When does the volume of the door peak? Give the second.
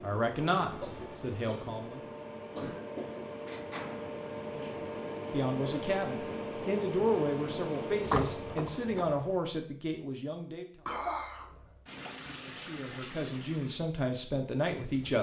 8 s.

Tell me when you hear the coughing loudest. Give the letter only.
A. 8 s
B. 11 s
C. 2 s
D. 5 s
B.